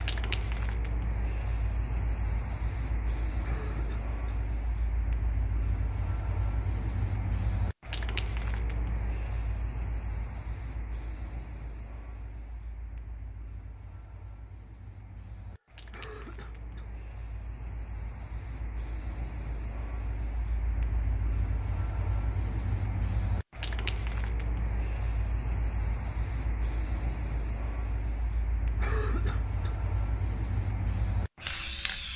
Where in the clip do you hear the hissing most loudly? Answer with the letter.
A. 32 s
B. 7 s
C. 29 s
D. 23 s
A.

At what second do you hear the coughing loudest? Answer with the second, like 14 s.
29 s.